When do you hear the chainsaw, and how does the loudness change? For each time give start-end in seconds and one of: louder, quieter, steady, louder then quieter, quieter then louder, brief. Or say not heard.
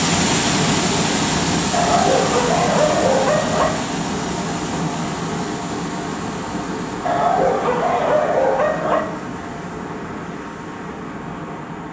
not heard.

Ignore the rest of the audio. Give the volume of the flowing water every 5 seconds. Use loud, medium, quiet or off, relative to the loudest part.
loud, medium, medium.